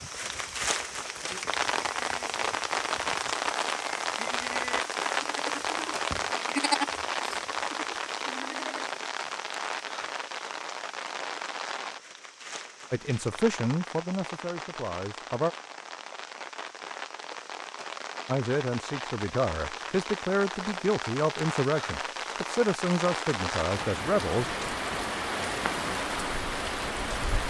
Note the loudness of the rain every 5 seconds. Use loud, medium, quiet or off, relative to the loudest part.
loud, loud, medium, medium, loud, loud.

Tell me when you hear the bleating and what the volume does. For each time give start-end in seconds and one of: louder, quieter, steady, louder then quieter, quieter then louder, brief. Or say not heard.
0.0-8.8 louder then quieter.